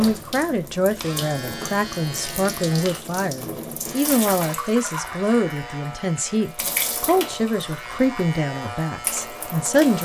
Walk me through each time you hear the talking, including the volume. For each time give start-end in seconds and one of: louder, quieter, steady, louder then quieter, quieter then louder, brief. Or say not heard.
0.0-10.0 steady.